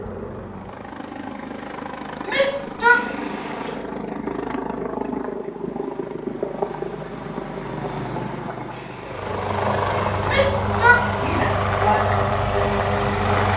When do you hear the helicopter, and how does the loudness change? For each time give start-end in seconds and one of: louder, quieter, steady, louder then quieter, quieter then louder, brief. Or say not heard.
0.0-13.5 louder.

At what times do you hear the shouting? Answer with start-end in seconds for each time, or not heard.
2.2-3.0, 10.2-12.0.